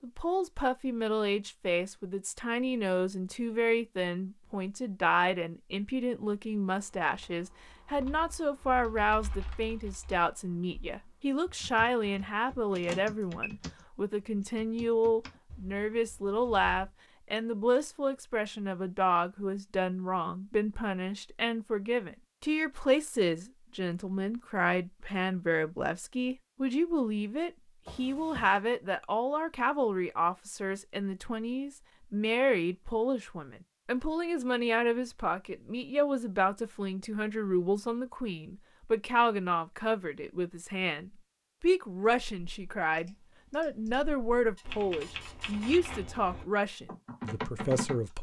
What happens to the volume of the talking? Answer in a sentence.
The volume of the talking stays about the same.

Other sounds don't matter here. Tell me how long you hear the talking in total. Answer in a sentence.
The talking can be heard for 48 seconds in total.